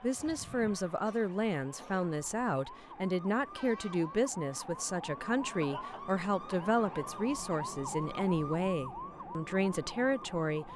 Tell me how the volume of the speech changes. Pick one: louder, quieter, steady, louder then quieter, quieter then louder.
steady.